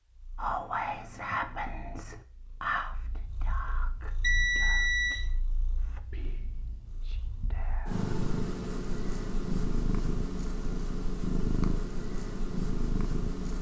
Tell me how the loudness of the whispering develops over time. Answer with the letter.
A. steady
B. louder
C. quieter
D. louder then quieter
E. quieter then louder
C.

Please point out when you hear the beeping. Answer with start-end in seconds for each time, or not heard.
4.2-5.2.